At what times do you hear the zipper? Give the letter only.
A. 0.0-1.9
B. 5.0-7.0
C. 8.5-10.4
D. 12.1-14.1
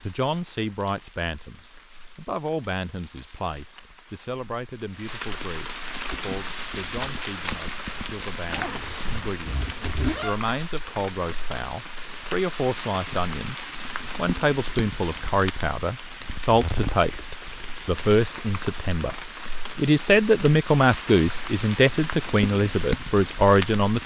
C.